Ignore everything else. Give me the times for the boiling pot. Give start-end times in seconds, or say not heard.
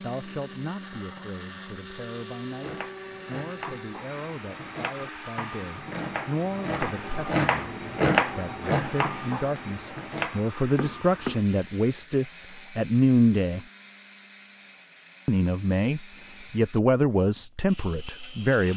not heard.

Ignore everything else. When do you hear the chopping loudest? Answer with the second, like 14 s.
8 s.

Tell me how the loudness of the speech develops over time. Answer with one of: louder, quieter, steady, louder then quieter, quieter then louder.
louder.